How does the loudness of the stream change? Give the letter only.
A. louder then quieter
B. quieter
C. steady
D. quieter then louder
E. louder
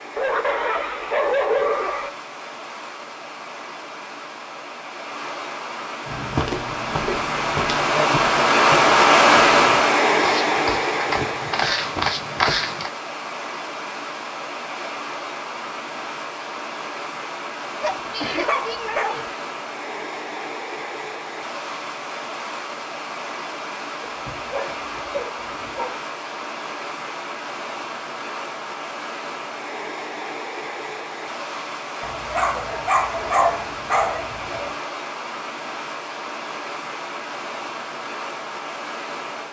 A.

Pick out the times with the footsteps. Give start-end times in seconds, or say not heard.
6.0-12.9.